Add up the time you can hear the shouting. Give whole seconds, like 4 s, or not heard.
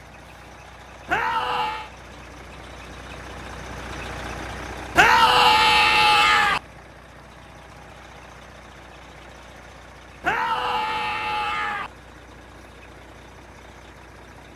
4 s.